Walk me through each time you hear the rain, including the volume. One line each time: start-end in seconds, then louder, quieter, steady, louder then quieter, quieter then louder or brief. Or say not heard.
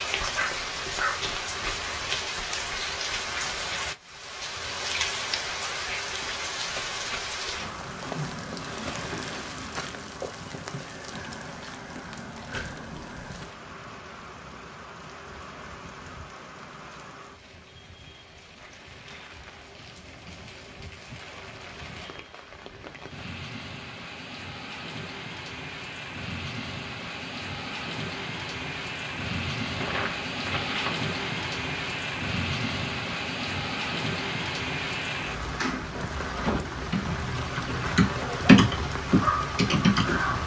0.0-40.4 quieter then louder.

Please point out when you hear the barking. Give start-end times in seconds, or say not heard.
0.3-2.0, 38.1-40.4.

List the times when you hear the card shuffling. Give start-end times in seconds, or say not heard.
29.8-31.0.